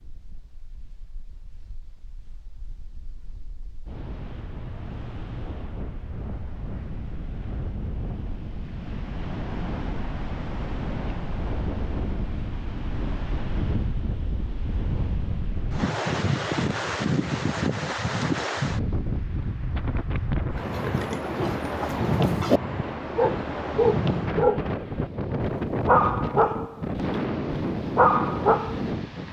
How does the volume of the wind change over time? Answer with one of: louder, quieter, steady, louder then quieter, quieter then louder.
louder.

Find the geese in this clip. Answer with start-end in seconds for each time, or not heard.
not heard.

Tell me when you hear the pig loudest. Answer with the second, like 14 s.
22 s.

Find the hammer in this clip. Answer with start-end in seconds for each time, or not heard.
not heard.